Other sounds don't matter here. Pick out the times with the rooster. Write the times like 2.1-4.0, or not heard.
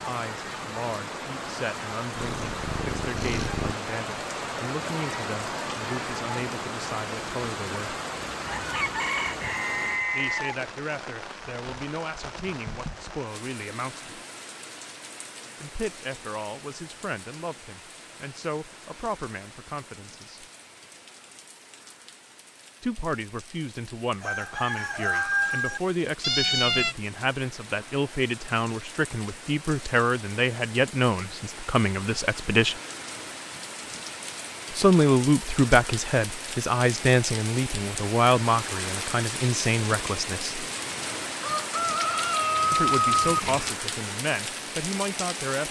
8.3-10.6, 24.2-25.8, 41.4-43.4.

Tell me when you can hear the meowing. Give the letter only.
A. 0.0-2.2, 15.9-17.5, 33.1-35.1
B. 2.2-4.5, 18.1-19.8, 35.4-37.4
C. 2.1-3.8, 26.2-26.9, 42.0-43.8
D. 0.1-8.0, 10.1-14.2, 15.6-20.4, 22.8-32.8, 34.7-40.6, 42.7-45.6
C.